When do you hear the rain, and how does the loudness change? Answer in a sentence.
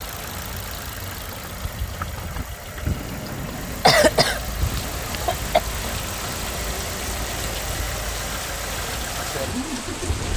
You can hear the rain from 4.6 to 10.3 s, at a steady volume.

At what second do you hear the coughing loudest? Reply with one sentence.
The volume of the coughing peaks at 4 seconds.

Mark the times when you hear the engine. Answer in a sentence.
The engine can be heard from 0.0 to 10.3 s.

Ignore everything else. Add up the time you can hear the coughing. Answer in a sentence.
The coughing can be heard for 3 seconds in total.